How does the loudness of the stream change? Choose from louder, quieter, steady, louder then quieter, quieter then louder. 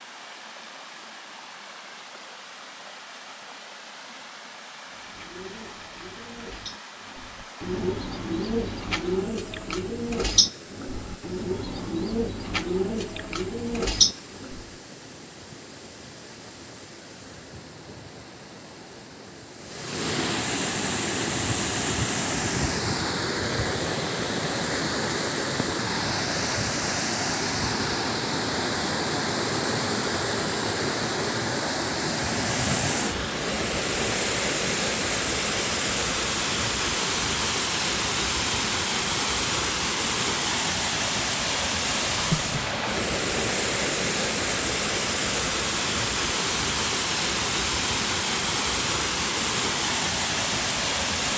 louder.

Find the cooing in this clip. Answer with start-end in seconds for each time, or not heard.
4.9-14.7.